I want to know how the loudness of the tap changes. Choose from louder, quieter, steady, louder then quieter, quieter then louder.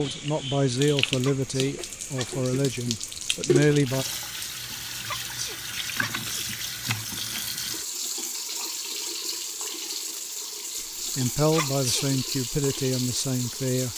steady.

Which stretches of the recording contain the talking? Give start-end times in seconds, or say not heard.
0.0-4.0, 11.2-13.9.